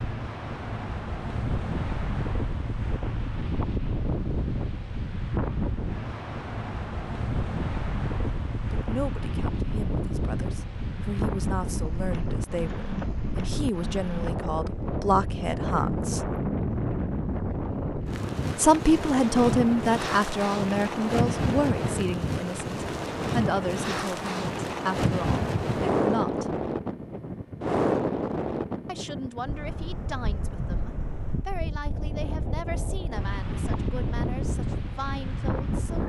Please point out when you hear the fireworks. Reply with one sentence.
The fireworks can't be heard in this clip.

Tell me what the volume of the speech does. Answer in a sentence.
The loudness of the speech goes up, then down.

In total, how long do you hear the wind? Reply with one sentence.
The wind can be heard for 36 seconds in total.